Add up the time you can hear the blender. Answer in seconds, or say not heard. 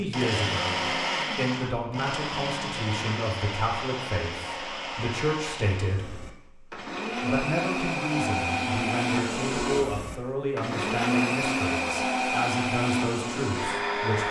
14 s.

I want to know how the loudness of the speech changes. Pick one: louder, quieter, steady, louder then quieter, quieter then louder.
steady.